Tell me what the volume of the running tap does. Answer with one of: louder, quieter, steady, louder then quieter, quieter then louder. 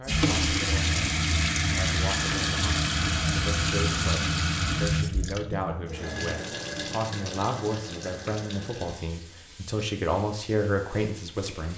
quieter.